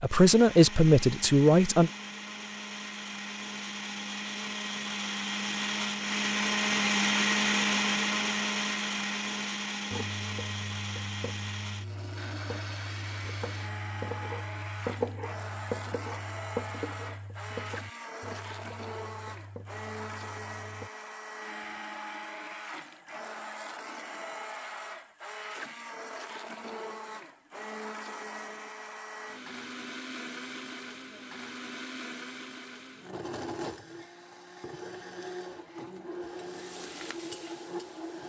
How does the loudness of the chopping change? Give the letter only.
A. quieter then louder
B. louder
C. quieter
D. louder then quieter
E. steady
D.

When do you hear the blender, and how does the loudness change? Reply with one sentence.
The blender can be heard from 0.0 to 38.2 s, getting quieter.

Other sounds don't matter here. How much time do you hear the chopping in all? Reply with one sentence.
You can hear the chopping for 11 seconds altogether.